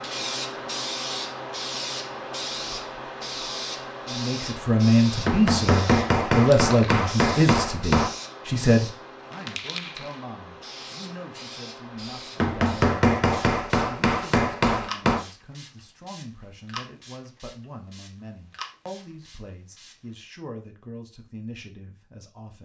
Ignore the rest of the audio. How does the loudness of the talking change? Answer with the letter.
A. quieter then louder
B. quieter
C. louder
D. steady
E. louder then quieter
B.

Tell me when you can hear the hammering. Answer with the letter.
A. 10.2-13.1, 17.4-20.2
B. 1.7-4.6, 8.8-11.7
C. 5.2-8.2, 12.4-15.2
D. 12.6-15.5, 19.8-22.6
C.